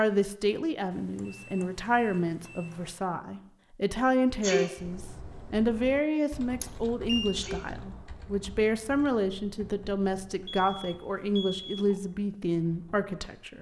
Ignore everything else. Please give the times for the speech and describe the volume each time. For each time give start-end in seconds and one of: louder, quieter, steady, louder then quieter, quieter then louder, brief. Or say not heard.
0.0-13.5 steady.